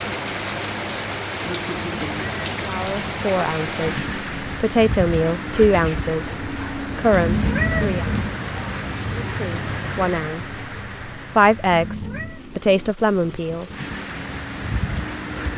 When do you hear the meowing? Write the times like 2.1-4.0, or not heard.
1.8-3.3, 7.1-8.3, 11.7-12.4.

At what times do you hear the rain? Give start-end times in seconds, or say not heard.
0.0-15.5.